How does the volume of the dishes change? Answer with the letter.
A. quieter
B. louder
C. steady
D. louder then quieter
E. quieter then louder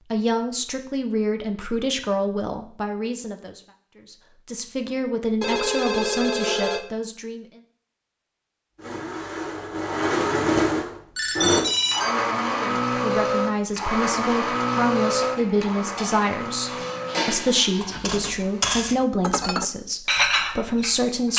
B.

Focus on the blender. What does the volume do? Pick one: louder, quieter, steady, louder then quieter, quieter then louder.
quieter.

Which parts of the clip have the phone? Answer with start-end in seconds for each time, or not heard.
5.4-6.8, 11.2-12.2.